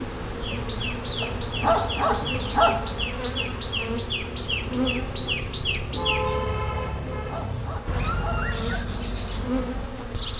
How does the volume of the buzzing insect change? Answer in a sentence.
The volume of the buzzing insect goes down, then up.